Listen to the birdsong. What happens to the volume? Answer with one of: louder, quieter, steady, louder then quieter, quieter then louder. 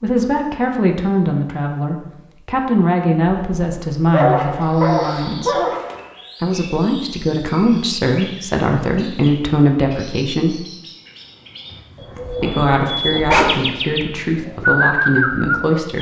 louder.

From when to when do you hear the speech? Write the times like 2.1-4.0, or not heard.
0.0-5.6, 6.4-10.7, 12.4-15.9.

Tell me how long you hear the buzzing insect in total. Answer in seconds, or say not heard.
not heard.